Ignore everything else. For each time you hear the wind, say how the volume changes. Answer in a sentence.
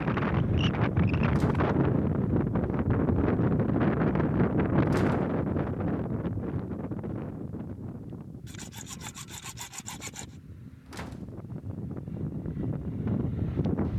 The wind can be heard from 0.0 to 13.9 s, getting quieter then louder.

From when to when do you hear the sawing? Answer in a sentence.
You can hear the sawing from 8.4 to 10.4 s.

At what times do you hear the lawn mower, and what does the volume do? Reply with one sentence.
You can't hear the lawn mower here.